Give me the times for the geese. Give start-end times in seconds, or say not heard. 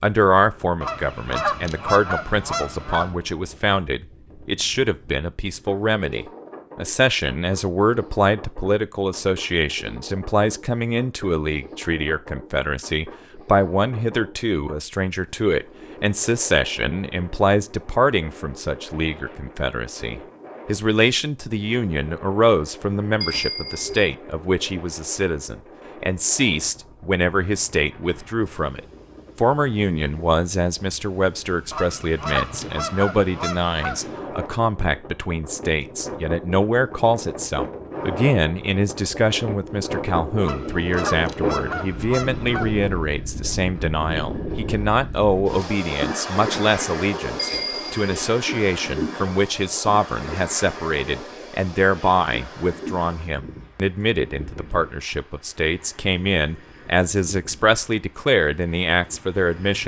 0.8-3.1, 31.7-34.1, 40.4-42.9.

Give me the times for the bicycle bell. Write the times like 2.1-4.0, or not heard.
23.2-24.1, 47.4-48.2.